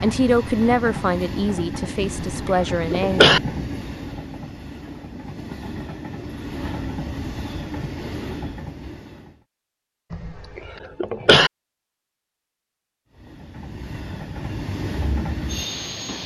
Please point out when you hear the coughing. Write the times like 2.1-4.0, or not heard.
2.0-3.4, 10.1-11.5.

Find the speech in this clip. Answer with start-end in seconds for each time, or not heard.
0.0-3.4.